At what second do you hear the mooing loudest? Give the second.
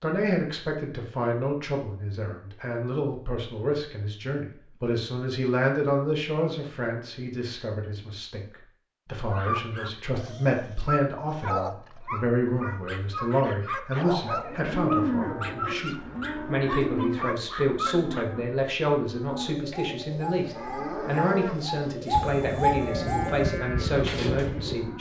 15 s.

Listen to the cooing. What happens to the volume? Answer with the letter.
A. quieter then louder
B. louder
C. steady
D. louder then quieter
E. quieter
D.